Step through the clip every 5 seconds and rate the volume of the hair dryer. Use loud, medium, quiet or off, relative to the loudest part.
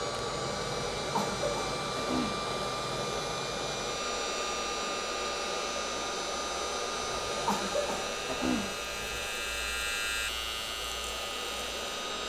loud, loud, medium.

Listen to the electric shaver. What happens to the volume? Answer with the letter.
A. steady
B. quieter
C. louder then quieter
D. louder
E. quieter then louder
D.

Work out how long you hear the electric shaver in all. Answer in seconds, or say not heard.
12 s.